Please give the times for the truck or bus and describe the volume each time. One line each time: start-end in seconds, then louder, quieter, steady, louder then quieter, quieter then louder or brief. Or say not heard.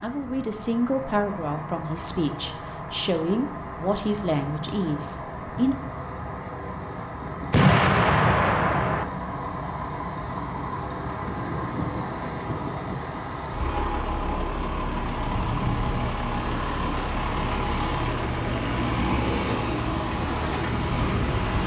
0.0-21.6 louder.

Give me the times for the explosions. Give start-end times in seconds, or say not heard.
7.5-9.1.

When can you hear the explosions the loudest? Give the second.
8 s.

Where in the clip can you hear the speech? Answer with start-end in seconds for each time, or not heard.
0.0-5.8.